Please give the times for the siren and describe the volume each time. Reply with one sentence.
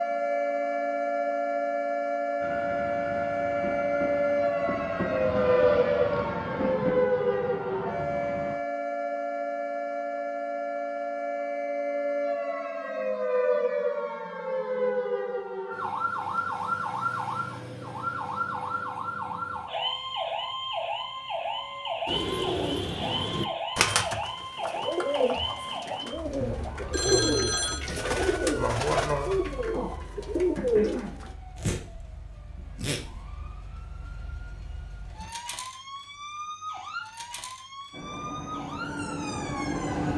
You can hear the siren from 0.0 to 40.1 s, getting quieter.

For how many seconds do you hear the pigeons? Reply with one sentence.
The pigeons can be heard for 9 seconds in total.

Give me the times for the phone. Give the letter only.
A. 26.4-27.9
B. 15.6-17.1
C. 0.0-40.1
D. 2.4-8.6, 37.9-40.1
A.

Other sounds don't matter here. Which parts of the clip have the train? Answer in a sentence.
The train can be heard from 2.4 to 8.6 s and from 37.9 to 40.1 s.